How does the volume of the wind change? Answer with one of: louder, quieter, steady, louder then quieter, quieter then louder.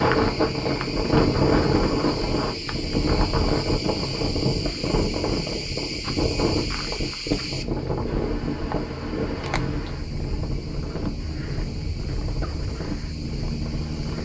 quieter.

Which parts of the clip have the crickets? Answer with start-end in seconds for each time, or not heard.
0.0-14.2.